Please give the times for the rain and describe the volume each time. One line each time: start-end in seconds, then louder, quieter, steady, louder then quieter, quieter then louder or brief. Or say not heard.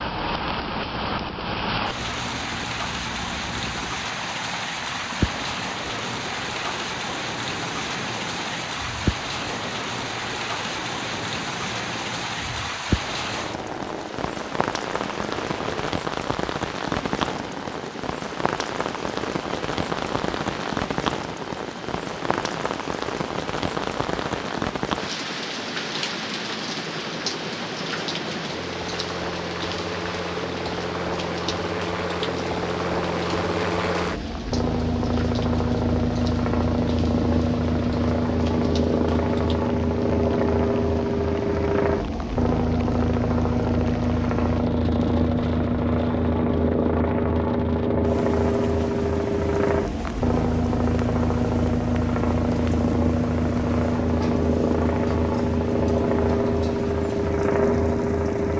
0.0-58.5 quieter.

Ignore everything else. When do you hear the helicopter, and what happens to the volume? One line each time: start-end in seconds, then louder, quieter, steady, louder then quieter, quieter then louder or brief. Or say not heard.
0.0-58.5 louder.